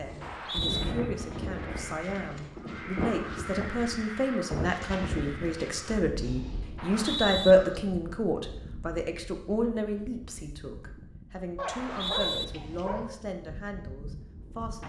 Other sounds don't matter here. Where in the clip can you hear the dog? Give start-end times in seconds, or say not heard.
11.6-13.1.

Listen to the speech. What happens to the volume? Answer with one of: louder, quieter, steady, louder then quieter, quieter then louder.
louder then quieter.